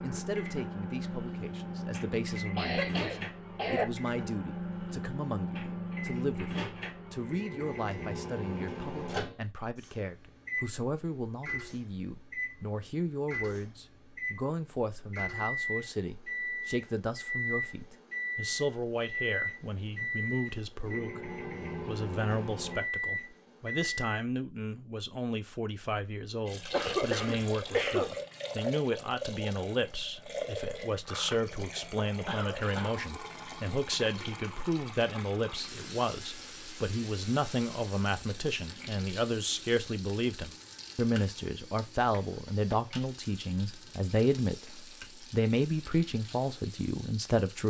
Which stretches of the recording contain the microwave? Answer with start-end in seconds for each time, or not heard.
0.0-24.2.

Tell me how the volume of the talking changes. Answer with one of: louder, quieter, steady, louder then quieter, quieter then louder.
louder.